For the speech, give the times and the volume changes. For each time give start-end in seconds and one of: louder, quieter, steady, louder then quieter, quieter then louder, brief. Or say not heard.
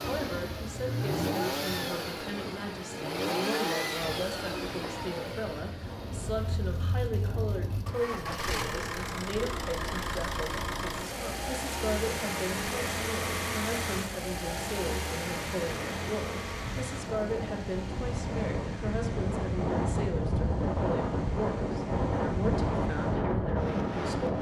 0.1-24.3 steady.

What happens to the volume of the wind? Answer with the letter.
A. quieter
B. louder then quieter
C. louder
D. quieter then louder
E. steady
C.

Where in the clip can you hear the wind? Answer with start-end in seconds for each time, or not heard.
0.0-24.3.